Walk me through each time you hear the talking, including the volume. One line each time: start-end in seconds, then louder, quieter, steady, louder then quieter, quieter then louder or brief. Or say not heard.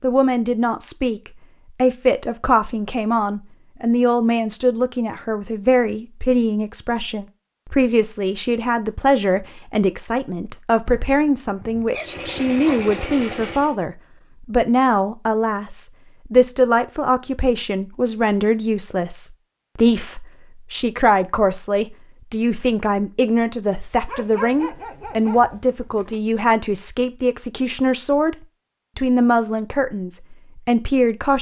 0.0-28.4 steady
28.9-31.3 brief.